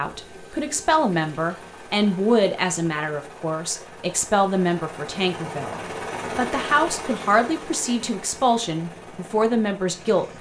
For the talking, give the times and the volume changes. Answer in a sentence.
You can hear the talking from 0.0 to 10.3 s, at a steady volume.